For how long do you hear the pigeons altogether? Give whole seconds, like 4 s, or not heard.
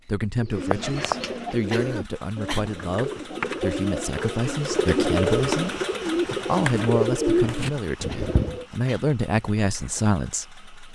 8 s.